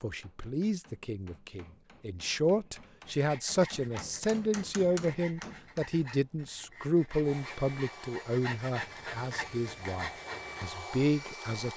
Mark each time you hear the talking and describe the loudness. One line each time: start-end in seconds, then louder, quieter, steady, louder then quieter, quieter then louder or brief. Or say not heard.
0.0-11.7 steady.